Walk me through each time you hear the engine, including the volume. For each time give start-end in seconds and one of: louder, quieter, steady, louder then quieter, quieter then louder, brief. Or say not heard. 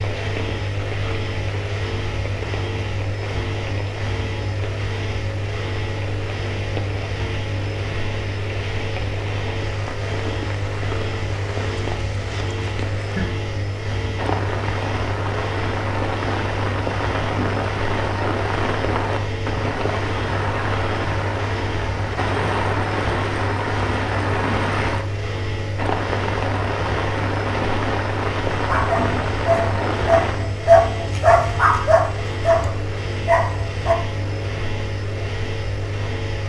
0.0-36.4 steady.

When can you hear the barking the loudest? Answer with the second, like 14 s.
31 s.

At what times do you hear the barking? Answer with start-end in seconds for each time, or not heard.
28.6-34.0.